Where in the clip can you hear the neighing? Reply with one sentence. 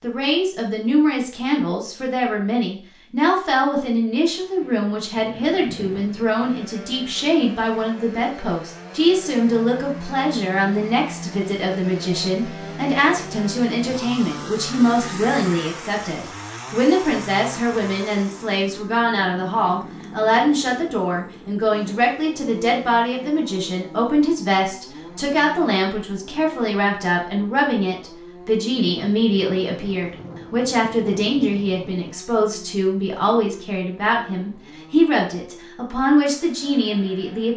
The neighing can't be heard in this clip.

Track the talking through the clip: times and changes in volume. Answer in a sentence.
You can hear the talking from 0.0 to 37.5 s, at a steady volume.